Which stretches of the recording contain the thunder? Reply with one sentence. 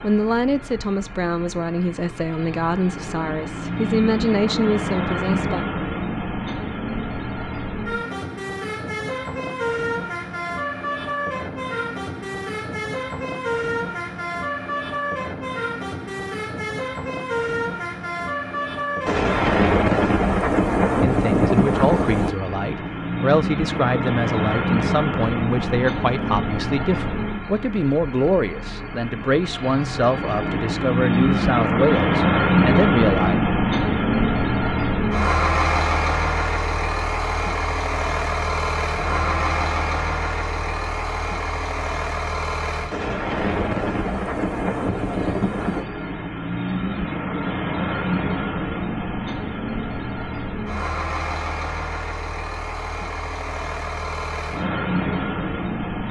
The thunder can be heard from 19.1 to 22.4 s and from 42.9 to 45.9 s.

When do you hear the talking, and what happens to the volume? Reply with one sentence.
The talking can be heard from 0.0 to 5.7 s, at a steady volume; and from 21.0 to 33.4 s, at a steady volume.